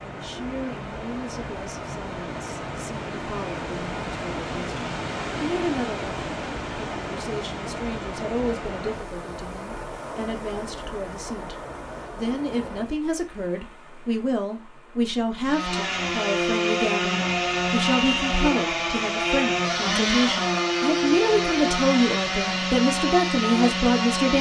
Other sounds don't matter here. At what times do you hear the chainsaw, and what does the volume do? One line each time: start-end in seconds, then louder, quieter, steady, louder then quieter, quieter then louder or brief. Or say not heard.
15.4-24.3 steady.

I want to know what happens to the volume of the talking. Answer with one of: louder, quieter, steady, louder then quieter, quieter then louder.
louder.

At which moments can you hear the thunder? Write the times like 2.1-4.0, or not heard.
not heard.